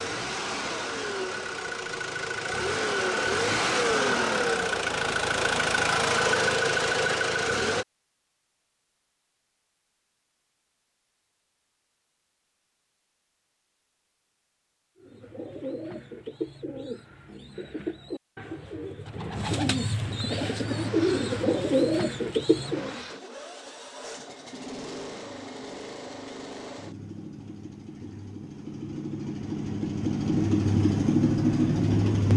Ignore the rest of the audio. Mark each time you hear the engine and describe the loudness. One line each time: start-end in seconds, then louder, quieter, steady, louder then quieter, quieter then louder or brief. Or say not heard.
0.0-7.8 louder
20.4-32.3 louder.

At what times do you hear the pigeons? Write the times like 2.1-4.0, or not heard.
15.0-23.1.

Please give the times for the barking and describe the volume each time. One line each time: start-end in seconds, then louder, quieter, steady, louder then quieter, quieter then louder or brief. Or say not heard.
not heard.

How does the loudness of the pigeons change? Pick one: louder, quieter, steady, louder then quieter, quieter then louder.
louder.